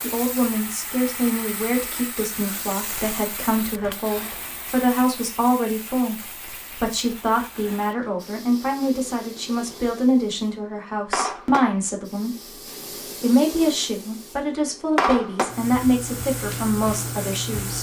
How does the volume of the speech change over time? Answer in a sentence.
The volume of the speech stays about the same.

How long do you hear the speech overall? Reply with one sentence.
The speech can be heard for 17 seconds in total.